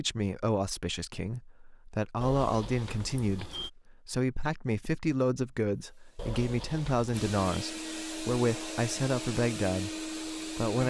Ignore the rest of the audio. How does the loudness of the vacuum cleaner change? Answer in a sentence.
The loudness of the vacuum cleaner goes up.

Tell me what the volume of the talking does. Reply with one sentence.
The volume of the talking stays about the same.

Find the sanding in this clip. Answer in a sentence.
You can't hear the sanding here.